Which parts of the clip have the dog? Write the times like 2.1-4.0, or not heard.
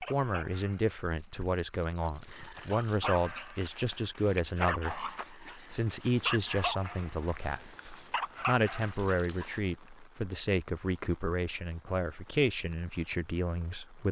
0.0-9.6.